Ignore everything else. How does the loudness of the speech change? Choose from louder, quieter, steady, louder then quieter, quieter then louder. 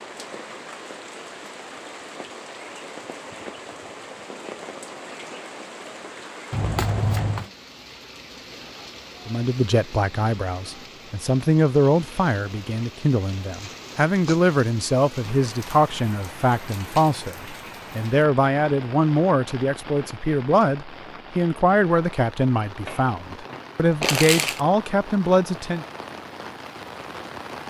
steady.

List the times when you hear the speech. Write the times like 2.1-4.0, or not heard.
9.2-25.9.